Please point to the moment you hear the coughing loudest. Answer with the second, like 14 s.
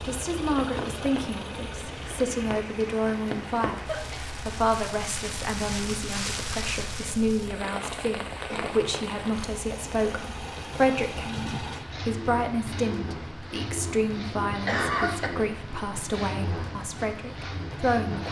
15 s.